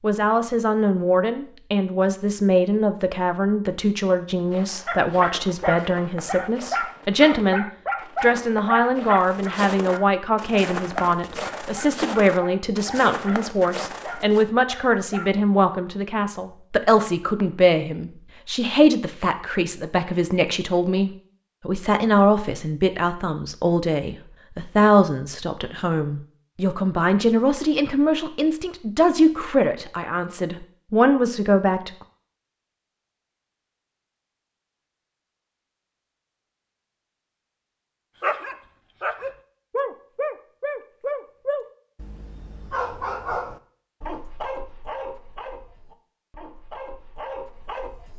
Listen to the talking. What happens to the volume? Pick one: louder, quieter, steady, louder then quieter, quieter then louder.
steady.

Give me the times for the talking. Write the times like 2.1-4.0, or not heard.
0.0-31.9.